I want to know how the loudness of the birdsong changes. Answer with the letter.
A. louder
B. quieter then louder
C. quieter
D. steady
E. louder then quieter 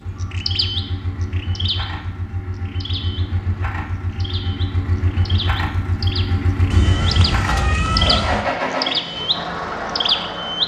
B.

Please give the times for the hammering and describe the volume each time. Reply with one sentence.
The hammering can't be heard in this clip.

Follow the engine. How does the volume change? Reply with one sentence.
The loudness of the engine goes up.